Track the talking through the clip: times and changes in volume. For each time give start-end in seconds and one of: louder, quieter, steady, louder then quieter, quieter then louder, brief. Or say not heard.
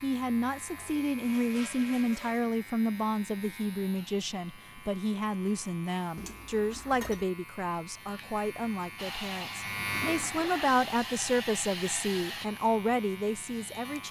0.0-14.0 steady.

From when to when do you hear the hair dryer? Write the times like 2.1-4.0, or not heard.
8.9-12.5.